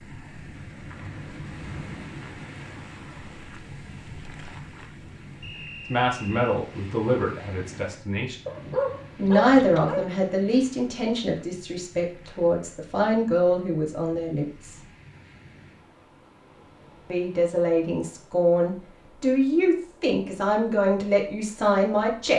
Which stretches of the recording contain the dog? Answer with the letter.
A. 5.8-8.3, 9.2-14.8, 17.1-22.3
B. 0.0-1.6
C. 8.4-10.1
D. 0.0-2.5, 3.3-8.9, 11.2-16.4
C.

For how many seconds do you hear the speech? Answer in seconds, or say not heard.
13 s.